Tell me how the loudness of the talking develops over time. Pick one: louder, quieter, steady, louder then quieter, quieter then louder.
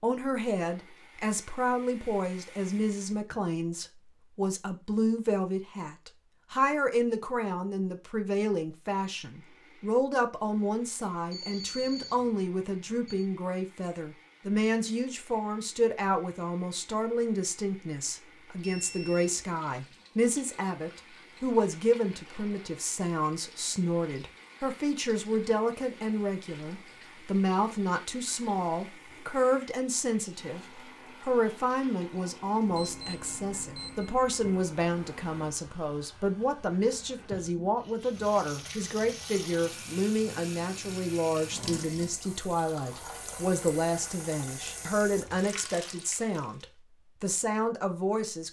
steady.